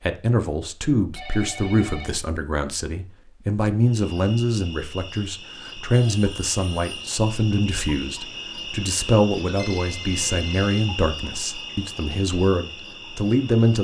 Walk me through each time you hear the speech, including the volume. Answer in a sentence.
The speech can be heard from 0.0 to 13.7 s, at a steady volume.